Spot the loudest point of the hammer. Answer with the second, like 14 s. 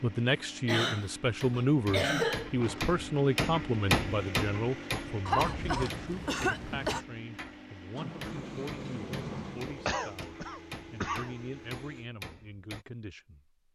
4 s.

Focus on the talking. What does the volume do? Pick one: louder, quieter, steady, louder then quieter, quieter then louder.
quieter.